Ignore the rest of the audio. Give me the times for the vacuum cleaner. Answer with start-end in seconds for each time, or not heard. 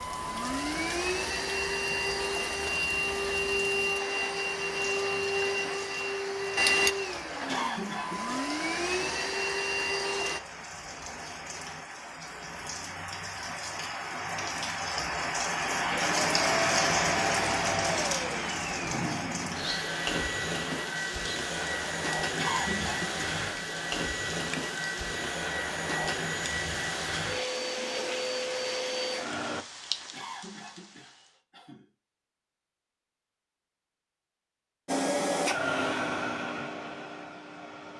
0.0-10.4, 15.8-29.6, 34.9-37.9.